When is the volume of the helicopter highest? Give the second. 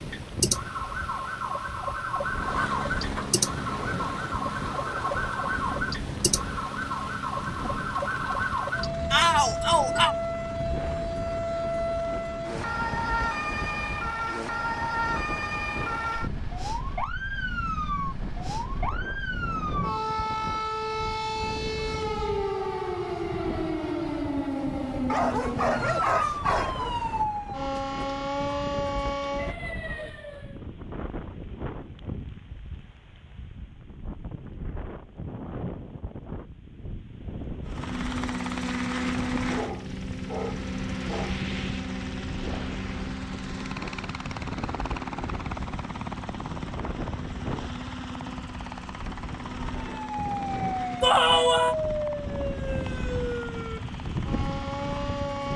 39 s.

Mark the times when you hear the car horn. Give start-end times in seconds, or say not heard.
not heard.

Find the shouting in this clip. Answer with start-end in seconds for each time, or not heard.
9.1-10.2, 51.0-51.8.